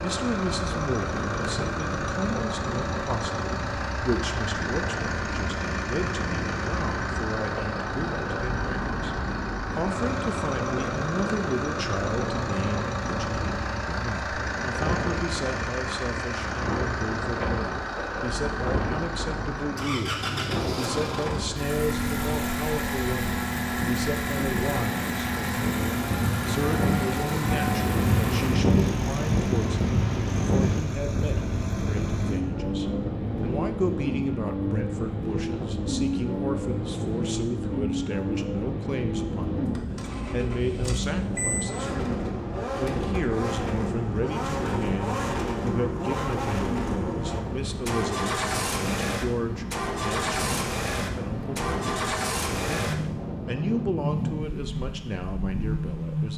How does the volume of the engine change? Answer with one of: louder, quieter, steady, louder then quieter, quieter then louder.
steady.